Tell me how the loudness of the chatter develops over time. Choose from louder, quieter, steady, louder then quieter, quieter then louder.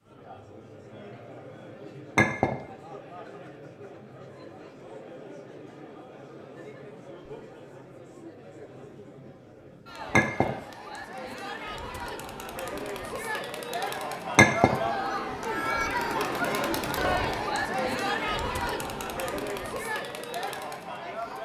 louder.